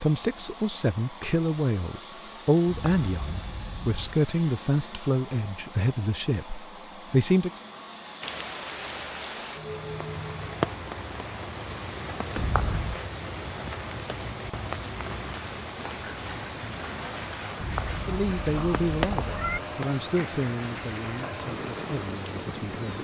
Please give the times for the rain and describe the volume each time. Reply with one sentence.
You can hear the rain from 8.2 to 22.9 s, at a steady volume.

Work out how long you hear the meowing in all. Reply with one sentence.
You can hear the meowing for 4 seconds altogether.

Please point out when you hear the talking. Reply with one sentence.
The talking can be heard from 0.0 to 7.6 s and from 18.0 to 22.9 s.